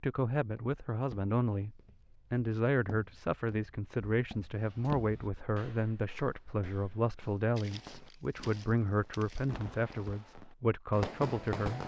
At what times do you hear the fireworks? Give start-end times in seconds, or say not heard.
7.7-11.8.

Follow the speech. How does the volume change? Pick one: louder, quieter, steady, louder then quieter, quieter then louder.
steady.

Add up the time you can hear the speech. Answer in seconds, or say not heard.
12 s.